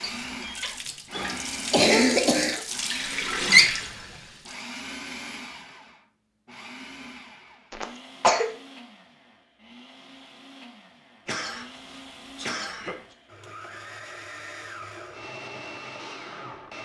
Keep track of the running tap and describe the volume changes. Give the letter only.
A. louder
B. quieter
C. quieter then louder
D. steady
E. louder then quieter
A.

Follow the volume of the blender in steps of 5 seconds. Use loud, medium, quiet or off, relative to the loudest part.
loud, medium, medium, loud.